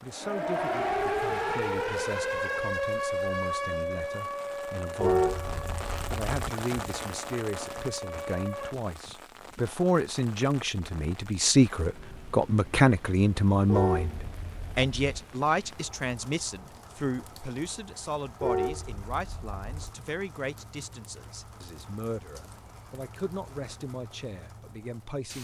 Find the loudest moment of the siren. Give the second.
1 s.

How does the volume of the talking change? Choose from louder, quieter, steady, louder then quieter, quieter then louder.
louder then quieter.